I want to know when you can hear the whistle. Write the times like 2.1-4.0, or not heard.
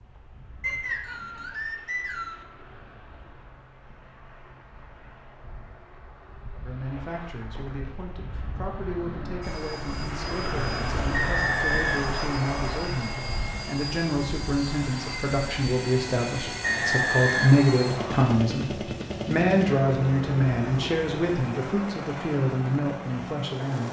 0.6-2.5, 11.1-12.9, 16.6-18.4.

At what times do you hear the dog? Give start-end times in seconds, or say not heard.
not heard.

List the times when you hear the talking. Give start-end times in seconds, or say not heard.
6.6-23.8.